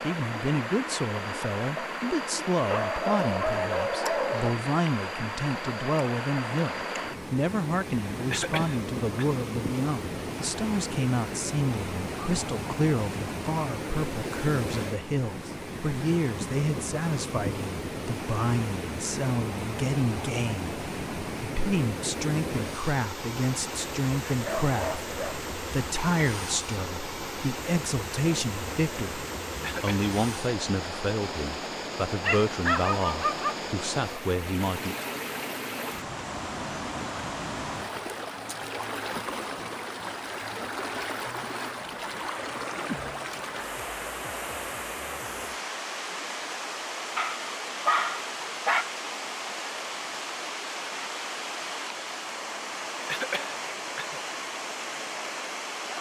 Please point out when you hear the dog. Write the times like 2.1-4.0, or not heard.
2.7-4.6, 24.2-25.4, 32.2-33.6, 47.1-48.9.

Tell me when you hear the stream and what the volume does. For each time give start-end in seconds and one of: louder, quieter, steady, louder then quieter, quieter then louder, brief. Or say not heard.
0.0-55.9 steady.